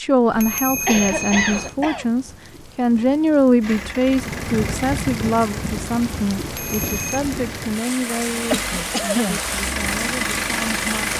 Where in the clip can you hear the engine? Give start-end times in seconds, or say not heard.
3.6-11.1.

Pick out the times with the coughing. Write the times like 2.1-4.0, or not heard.
0.8-2.0, 8.5-9.4.